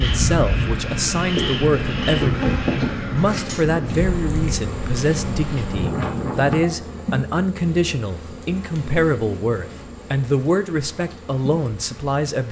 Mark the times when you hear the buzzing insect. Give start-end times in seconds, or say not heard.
0.0-12.2.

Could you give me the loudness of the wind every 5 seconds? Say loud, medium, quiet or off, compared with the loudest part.
loud, loud, quiet.